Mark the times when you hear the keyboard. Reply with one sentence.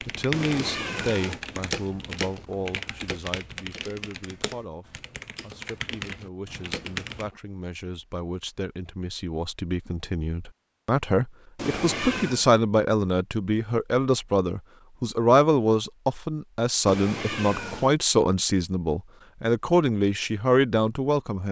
The keyboard can be heard from 0.0 to 7.3 s.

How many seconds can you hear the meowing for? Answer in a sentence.
You can hear the meowing for 3 seconds altogether.